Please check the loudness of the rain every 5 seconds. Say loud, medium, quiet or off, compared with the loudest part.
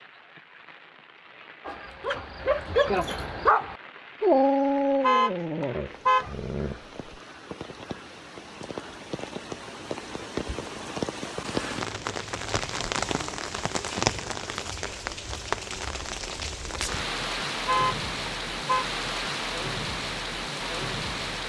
quiet, medium, loud, loud, loud.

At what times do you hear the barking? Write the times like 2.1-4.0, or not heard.
1.6-7.2.